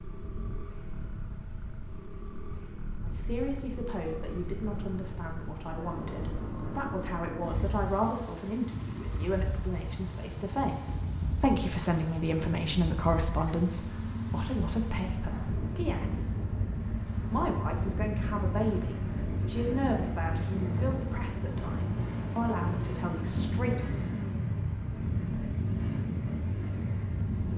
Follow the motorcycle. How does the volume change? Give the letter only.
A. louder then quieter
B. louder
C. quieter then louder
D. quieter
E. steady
B.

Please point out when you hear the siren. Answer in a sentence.
The siren can't be heard in this clip.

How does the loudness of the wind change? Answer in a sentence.
The loudness of the wind goes up.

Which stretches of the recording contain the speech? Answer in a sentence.
The speech can be heard from 3.0 to 16.4 s and from 17.3 to 23.9 s.